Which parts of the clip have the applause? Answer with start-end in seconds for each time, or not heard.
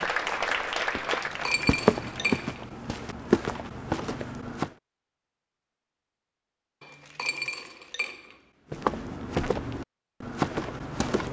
0.0-2.4.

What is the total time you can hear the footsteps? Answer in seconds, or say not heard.
7 s.